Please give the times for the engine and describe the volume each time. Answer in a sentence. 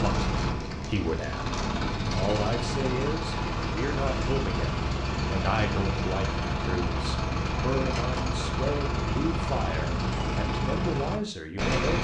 You can hear the engine from 0.0 to 12.0 s, at a steady volume.